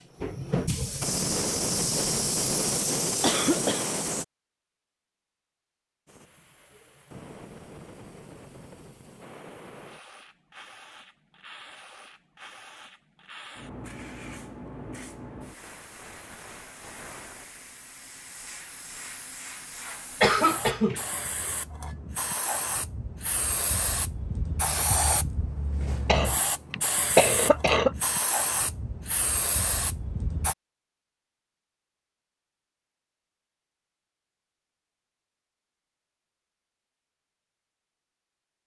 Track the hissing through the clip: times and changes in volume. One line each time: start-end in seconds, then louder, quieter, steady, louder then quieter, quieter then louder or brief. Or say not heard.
0.0-4.2 steady
6.0-30.6 louder.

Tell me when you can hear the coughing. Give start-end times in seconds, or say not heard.
3.2-3.9, 20.2-21.1, 26.1-27.9.